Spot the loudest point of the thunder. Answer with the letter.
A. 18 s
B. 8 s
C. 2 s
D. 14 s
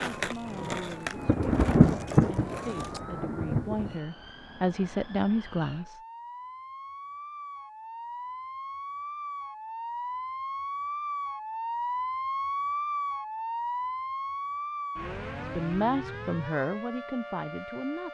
C.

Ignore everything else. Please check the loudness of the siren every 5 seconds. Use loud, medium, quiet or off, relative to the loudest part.
quiet, medium, loud, medium.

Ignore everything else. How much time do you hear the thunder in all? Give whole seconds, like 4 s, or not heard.
3 s.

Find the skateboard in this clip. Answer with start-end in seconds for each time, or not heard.
0.0-3.0.